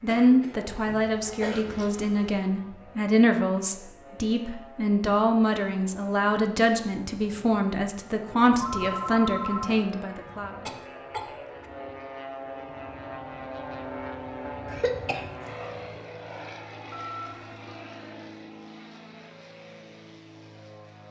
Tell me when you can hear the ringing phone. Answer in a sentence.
The ringing phone can be heard from 0.8 to 2.3 s, from 8.6 to 9.8 s and from 16.9 to 17.5 s.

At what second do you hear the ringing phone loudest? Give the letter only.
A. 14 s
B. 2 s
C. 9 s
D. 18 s
C.